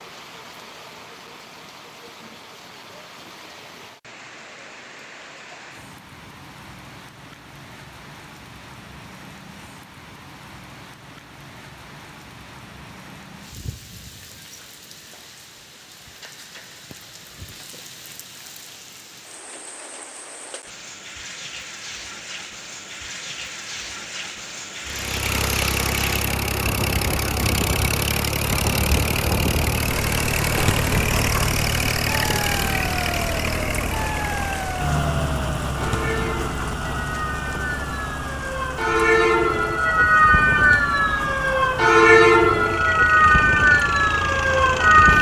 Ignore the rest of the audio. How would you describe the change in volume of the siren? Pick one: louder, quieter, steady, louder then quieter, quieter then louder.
louder.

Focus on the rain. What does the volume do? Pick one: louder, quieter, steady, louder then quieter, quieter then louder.
louder then quieter.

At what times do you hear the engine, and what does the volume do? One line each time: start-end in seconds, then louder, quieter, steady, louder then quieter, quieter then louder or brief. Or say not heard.
24.9-45.1 quieter.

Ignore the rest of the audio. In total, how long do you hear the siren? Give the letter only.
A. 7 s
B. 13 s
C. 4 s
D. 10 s
B.